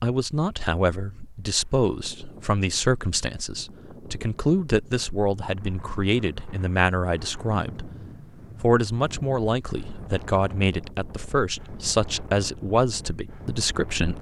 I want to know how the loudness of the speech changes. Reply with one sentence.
The volume of the speech stays about the same.